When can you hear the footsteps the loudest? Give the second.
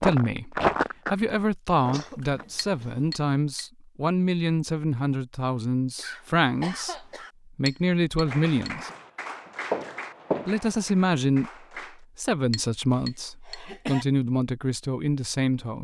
1 s.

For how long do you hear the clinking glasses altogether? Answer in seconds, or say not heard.
3 s.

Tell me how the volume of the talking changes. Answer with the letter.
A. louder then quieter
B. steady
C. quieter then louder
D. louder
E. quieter
B.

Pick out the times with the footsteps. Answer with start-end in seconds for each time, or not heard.
0.0-2.5, 8.2-10.7.